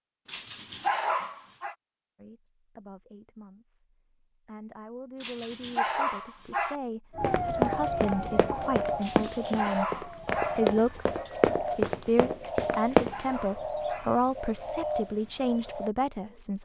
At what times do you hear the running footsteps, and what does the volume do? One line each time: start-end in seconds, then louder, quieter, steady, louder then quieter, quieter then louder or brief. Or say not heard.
7.2-13.2 steady.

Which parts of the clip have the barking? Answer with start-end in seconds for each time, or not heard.
0.2-1.8, 5.2-6.8, 9.0-10.6, 12.5-14.1.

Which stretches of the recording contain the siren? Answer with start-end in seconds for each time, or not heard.
7.1-10.8.